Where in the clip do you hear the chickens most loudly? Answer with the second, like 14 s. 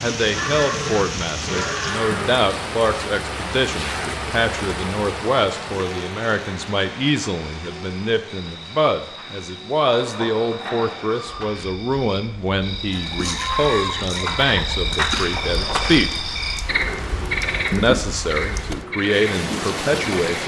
14 s.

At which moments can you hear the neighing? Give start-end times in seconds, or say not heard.
0.3-2.4, 9.8-11.6, 15.3-16.0.